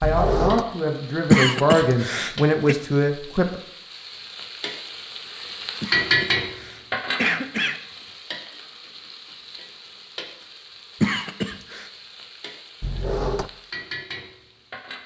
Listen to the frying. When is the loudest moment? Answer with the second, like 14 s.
6 s.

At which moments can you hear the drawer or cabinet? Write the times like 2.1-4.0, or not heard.
0.0-0.7, 12.8-13.5.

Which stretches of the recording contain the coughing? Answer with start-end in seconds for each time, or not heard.
1.3-2.8, 5.8-7.8, 11.0-11.9.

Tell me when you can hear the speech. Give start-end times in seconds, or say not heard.
0.0-3.5.